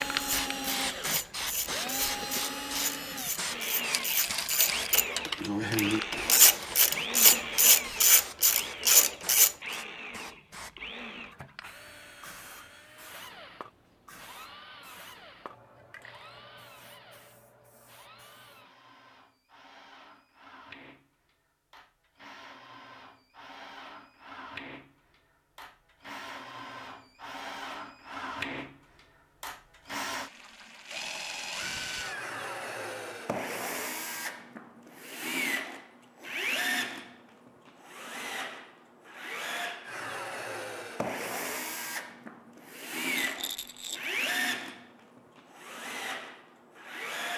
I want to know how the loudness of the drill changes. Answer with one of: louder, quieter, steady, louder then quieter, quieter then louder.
quieter then louder.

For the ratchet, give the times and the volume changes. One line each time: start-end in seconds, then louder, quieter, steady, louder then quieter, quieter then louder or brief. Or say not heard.
0.1-9.6 louder.